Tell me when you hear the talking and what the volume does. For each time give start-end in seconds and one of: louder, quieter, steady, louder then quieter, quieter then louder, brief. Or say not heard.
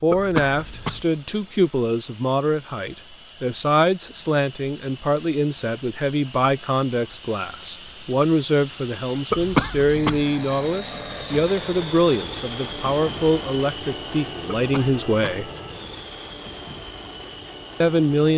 0.0-15.5 steady
17.8-18.3 brief.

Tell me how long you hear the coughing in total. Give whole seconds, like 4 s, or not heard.
3 s.